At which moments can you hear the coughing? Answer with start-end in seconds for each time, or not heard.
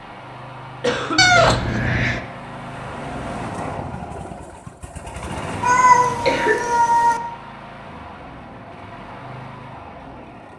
0.8-1.6, 6.0-6.7.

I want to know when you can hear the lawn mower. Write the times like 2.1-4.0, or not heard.
0.0-10.5.